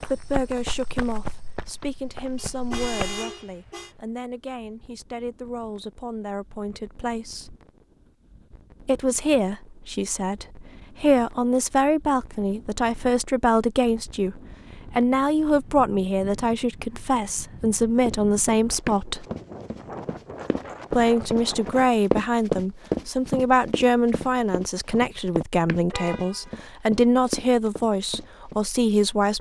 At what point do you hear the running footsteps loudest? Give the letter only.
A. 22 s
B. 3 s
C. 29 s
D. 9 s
A.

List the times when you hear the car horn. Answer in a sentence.
You can hear the car horn from 2.4 to 4.0 s and from 25.9 to 26.6 s.